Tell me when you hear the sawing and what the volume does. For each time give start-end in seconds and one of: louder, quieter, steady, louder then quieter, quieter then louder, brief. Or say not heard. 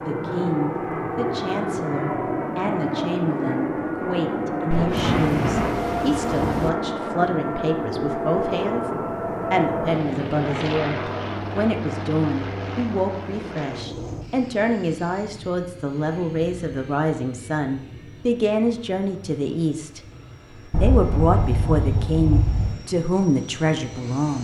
not heard.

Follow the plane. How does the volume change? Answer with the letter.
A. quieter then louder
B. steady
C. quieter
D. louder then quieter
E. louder
C.